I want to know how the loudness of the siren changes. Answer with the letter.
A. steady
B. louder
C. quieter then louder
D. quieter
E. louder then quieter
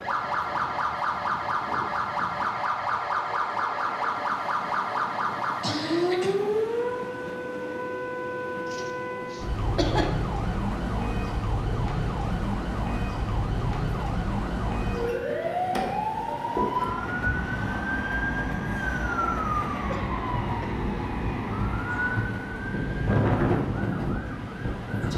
A.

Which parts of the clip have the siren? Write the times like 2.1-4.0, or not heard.
0.0-25.1.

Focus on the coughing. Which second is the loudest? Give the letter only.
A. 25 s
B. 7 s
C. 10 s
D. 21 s
C.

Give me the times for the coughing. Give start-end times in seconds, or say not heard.
5.6-6.7, 8.7-10.2, 19.9-20.8.